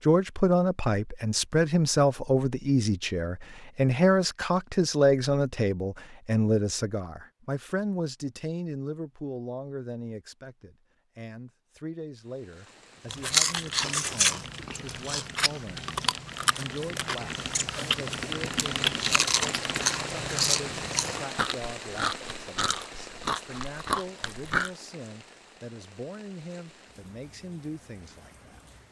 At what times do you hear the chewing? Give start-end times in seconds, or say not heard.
13.1-24.7.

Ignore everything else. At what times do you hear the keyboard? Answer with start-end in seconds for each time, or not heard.
13.4-20.0.